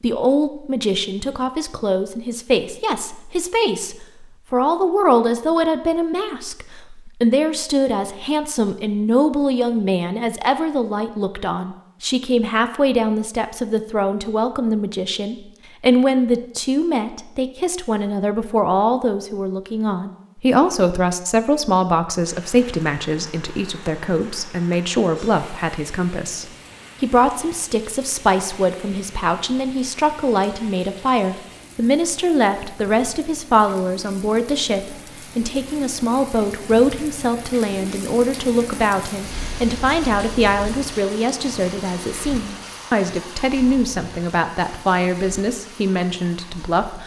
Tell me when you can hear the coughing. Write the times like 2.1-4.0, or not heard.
not heard.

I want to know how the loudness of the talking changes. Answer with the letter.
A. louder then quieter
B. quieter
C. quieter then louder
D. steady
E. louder
D.